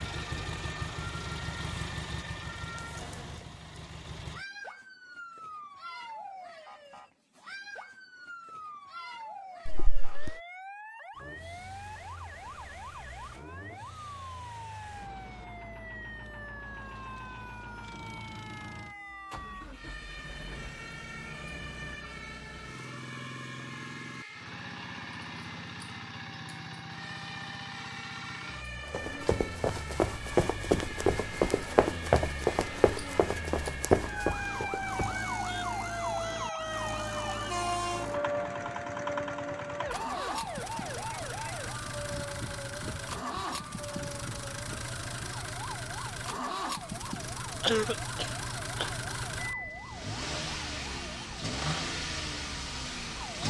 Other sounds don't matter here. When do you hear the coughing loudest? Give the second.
48 s.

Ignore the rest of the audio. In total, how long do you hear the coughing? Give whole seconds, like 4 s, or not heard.
2 s.